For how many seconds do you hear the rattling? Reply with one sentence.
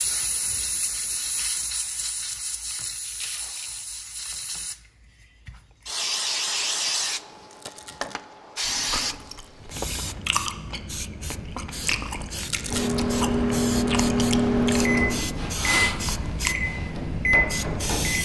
You can hear the rattling for 2 seconds altogether.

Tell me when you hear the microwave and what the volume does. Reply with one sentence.
You can hear the microwave from 12.7 to 18.2 s, getting quieter then louder.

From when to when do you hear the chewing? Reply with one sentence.
The chewing can be heard from 8.6 to 16.6 s.